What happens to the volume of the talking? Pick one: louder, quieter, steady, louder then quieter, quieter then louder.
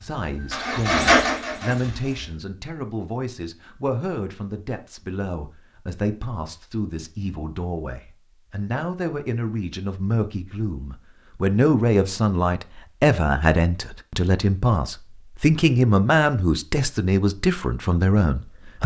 louder.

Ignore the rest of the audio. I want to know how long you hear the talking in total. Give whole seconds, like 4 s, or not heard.
19 s.